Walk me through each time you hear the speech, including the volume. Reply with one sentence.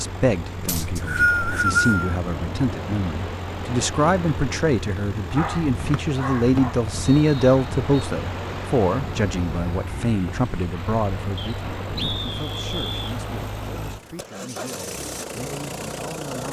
The speech can be heard from 0.0 to 16.4 s, getting louder then quieter.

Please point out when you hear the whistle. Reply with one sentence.
The whistle can be heard from 0.7 to 2.1 s, from 5.9 to 8.1 s and from 11.3 to 13.2 s.